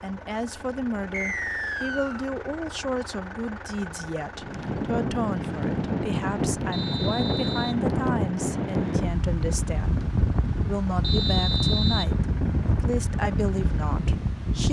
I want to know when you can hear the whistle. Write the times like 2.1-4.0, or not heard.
1.1-2.2, 6.7-7.8, 11.0-12.1.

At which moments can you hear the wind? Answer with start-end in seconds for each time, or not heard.
4.3-14.6.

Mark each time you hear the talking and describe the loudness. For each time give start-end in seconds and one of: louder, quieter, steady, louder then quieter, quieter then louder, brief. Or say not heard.
0.0-14.6 steady.